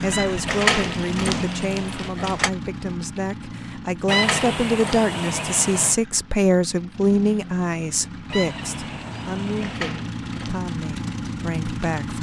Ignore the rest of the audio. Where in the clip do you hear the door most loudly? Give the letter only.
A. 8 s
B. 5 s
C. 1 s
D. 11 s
C.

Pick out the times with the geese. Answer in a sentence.
The geese can be heard from 0.1 to 2.1 s, from 4.0 to 6.0 s and from 8.2 to 9.8 s.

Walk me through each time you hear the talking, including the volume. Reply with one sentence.
The talking can be heard from 0.0 to 12.1 s, getting louder then quieter.